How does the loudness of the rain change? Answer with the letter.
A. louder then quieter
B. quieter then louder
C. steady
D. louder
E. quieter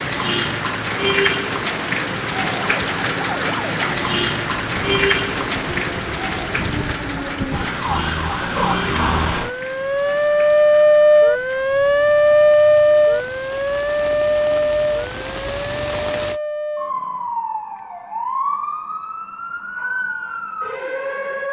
B.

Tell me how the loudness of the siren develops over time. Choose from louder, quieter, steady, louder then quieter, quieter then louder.
louder then quieter.